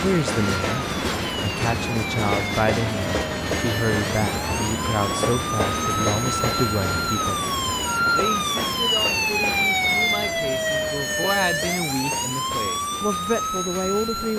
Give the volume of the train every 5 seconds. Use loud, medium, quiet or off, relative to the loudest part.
loud, loud, medium.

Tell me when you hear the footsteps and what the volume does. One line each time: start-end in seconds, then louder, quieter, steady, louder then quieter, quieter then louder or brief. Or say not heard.
not heard.